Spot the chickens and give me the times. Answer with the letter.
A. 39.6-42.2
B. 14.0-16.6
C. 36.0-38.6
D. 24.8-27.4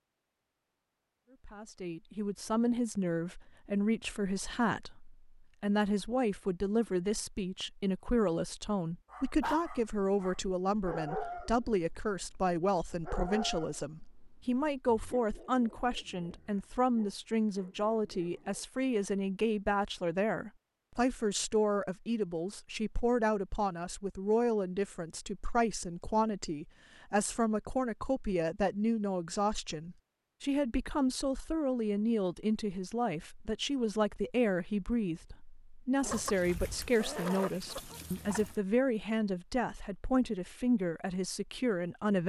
C.